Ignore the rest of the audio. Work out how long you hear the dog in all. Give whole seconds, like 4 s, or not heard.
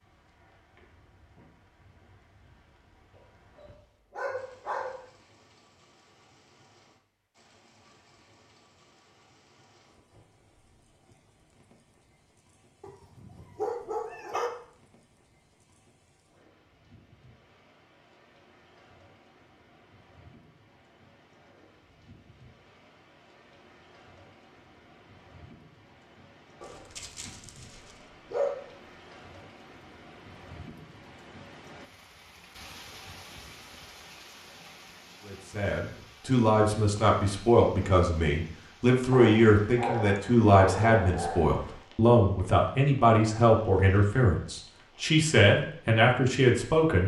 8 s.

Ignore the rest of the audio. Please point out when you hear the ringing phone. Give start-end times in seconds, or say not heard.
not heard.